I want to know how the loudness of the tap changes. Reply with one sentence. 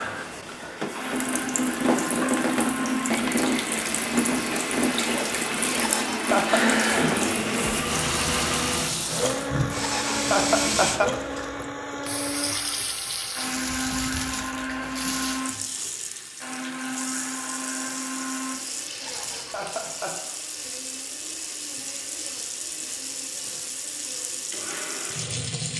The volume of the tap goes down.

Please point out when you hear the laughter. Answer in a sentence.
You can hear the laughter from 5.8 to 6.7 s, from 9.8 to 11.1 s and from 19.0 to 20.1 s.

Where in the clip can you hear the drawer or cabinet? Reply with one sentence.
The drawer or cabinet can't be heard in this clip.